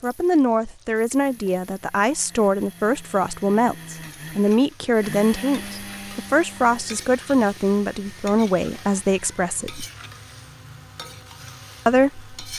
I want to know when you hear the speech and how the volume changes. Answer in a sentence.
You can hear the speech from 0.0 to 9.8 s, at a steady volume; and briefly from 11.8 to 12.5 s.